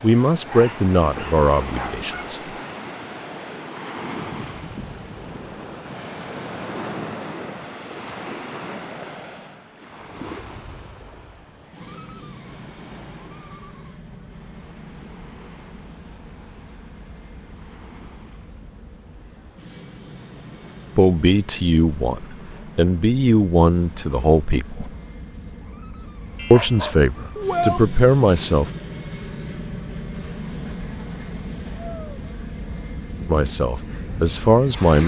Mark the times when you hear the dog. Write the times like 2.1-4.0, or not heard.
0.5-2.4, 26.4-27.8.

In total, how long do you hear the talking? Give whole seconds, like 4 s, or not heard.
10 s.